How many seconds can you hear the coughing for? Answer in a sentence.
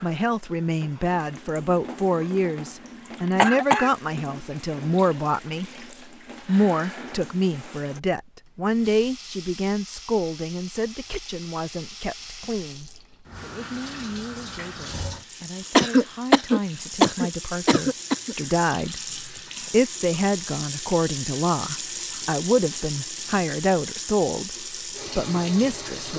You can hear the coughing for 3 seconds altogether.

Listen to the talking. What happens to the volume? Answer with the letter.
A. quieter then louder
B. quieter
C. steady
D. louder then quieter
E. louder
A.